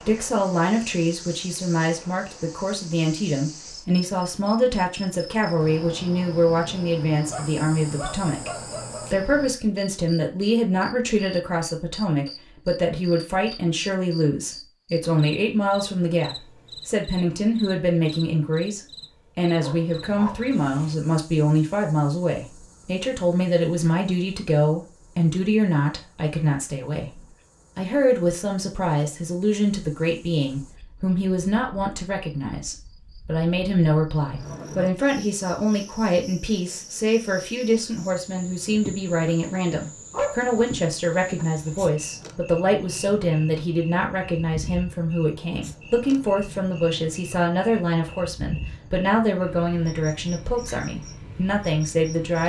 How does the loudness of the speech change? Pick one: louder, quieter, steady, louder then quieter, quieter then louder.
steady.